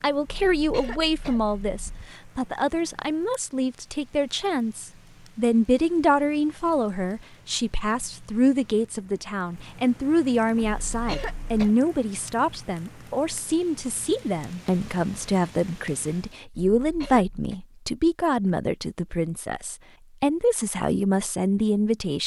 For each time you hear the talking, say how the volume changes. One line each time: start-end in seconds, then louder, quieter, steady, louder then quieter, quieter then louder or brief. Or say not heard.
0.0-22.2 steady.